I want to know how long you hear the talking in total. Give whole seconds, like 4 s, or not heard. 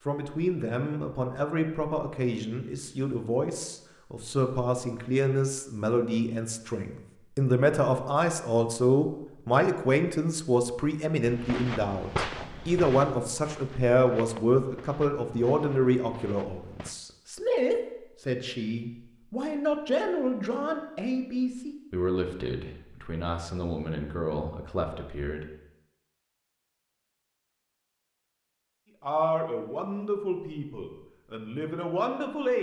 29 s.